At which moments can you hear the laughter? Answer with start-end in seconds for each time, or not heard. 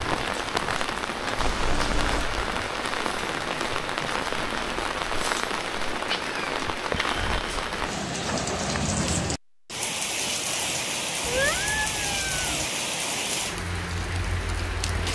not heard.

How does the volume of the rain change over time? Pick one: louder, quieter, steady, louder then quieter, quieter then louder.
steady.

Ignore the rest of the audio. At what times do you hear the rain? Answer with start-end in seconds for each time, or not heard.
0.0-15.1.